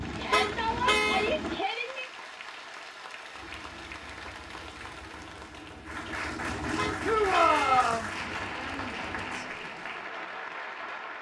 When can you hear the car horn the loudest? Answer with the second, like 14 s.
1 s.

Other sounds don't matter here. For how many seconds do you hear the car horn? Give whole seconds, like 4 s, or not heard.
2 s.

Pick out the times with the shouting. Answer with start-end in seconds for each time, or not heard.
0.1-2.0, 7.0-8.1.